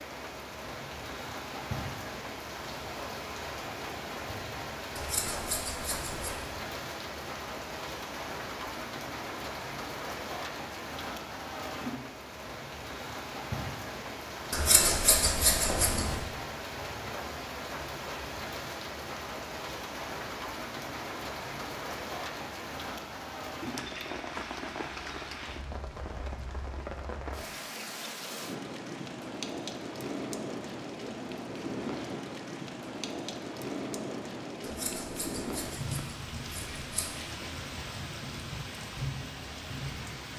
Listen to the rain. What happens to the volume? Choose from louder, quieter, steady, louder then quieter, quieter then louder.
steady.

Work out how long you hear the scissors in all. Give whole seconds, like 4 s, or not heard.
6 s.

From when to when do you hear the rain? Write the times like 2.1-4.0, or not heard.
0.0-40.3.